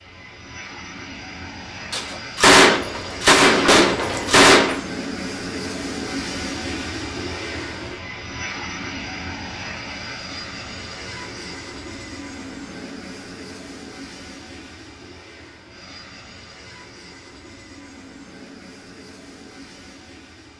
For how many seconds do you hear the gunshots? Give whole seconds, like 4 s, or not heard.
3 s.